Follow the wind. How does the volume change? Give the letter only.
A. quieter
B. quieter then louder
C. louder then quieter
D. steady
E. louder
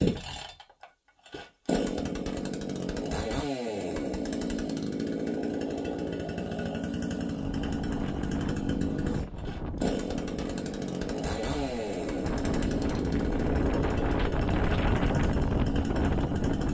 E.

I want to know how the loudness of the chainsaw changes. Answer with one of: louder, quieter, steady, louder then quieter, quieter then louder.
steady.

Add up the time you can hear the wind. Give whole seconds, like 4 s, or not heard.
9 s.